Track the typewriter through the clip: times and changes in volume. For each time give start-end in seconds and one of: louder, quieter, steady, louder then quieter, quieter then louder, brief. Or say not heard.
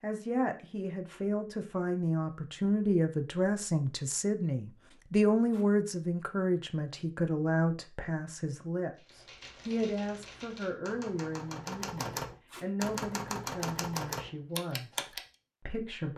8.9-15.2 louder.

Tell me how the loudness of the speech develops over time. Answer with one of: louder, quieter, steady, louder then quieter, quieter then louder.
quieter.